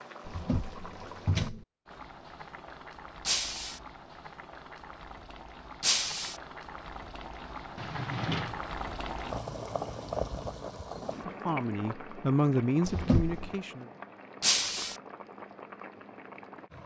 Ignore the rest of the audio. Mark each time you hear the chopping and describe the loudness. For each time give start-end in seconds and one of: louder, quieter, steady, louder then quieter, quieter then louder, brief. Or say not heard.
not heard.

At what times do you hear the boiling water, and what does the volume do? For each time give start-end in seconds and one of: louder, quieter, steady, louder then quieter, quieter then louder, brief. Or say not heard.
0.0-16.8 louder then quieter.